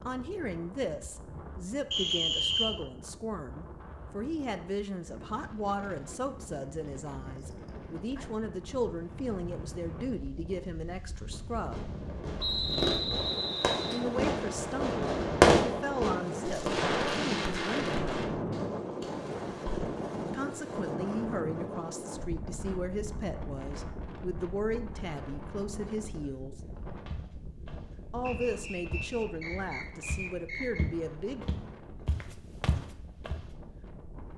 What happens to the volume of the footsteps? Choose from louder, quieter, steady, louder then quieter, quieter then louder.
louder.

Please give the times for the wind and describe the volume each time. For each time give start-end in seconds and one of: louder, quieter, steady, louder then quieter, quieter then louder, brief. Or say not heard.
0.0-34.3 louder then quieter.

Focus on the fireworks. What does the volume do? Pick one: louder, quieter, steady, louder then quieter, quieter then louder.
louder then quieter.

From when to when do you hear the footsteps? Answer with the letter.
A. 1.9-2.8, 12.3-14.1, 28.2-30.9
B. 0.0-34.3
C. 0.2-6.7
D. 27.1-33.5
D.